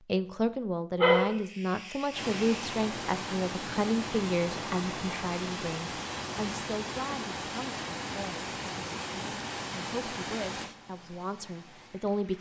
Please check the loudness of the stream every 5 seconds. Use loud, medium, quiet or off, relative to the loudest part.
loud, loud, medium.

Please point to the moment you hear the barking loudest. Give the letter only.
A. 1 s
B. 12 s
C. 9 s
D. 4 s
A.